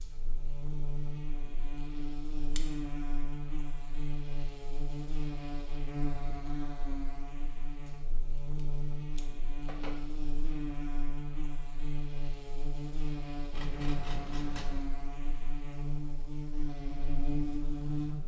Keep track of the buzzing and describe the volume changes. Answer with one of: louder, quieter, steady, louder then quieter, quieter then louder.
steady.